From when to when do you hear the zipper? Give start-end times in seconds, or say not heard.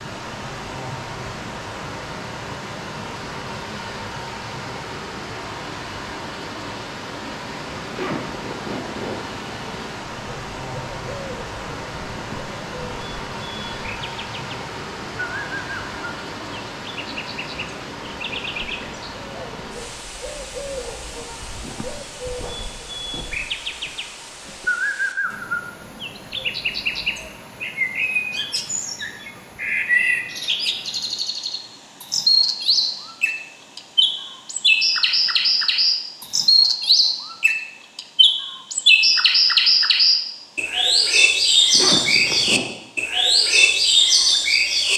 7.9-9.3, 41.7-42.8.